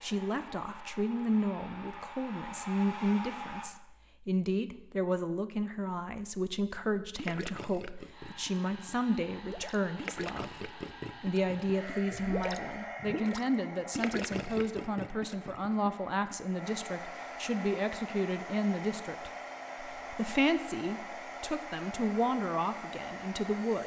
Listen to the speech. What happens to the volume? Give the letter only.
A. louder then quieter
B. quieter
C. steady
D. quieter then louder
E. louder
C.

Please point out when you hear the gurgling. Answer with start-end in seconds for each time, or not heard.
7.2-16.4.